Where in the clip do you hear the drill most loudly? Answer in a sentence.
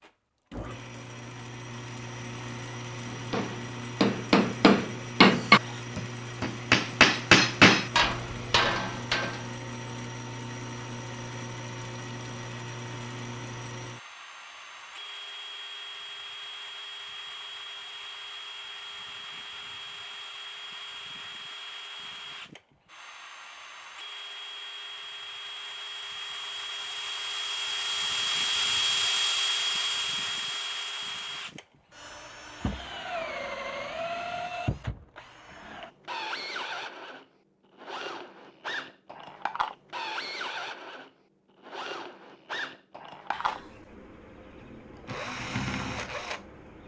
The loudest moment of the drill is at 29 seconds.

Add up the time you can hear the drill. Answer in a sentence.
The drill can be heard for 47 seconds in total.